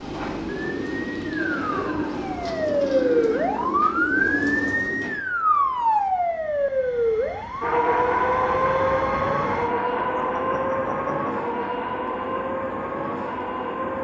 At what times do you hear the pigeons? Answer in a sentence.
You can hear the pigeons from 0.0 to 5.2 s.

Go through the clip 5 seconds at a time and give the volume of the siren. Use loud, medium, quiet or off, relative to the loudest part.
loud, loud, medium.